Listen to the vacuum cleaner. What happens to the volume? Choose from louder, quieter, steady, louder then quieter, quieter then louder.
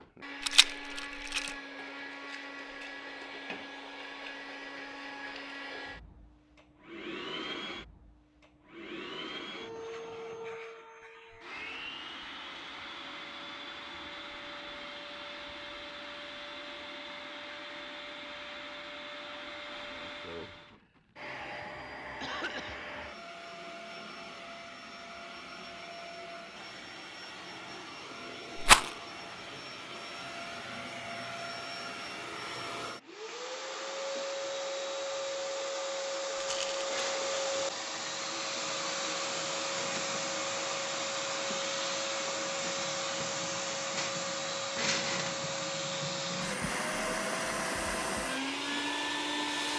louder.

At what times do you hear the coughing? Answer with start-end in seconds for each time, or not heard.
22.2-22.8.